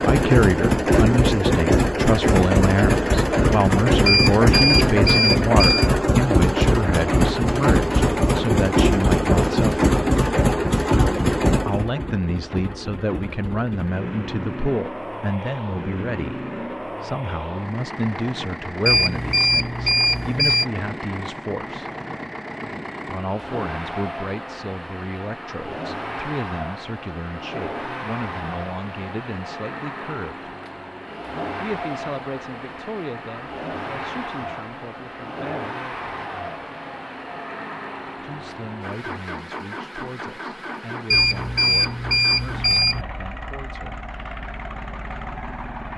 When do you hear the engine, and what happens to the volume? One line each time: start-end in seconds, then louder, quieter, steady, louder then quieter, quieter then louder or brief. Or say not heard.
0.0-45.9 quieter.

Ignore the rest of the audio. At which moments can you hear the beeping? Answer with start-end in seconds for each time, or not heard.
4.0-5.9, 18.9-20.6, 41.1-43.0.